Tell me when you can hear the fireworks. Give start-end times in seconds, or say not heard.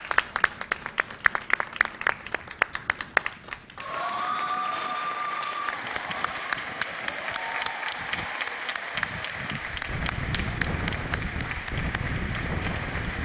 not heard.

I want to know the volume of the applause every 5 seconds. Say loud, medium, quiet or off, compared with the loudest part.
loud, loud, medium.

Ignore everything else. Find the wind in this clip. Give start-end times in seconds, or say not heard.
0.0-13.1.